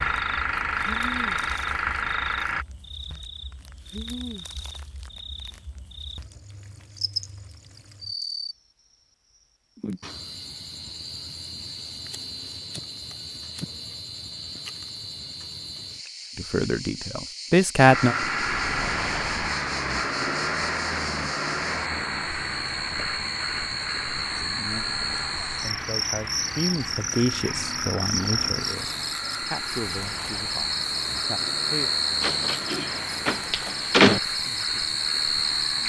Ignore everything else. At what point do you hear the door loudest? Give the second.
34 s.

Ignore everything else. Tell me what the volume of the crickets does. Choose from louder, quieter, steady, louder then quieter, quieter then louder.
louder.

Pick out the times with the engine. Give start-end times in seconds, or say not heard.
0.0-2.6, 17.9-35.8.